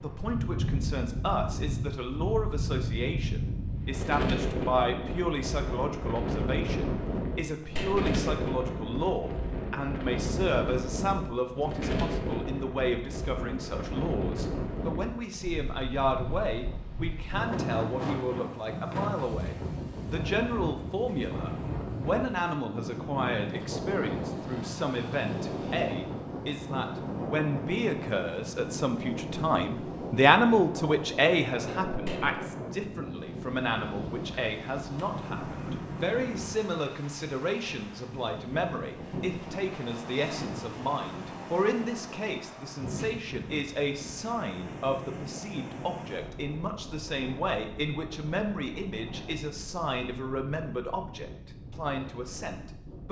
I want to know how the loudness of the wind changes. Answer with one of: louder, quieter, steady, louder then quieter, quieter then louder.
quieter.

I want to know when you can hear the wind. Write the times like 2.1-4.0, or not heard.
0.0-53.0.